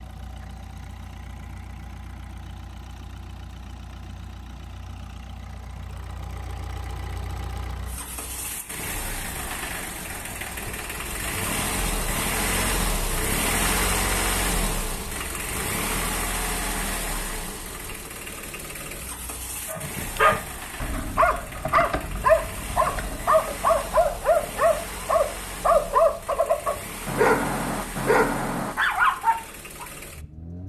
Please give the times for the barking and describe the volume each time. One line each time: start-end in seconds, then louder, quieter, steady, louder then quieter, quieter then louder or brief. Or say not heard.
19.6-29.9 steady.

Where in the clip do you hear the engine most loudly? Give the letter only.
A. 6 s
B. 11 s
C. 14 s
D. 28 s
C.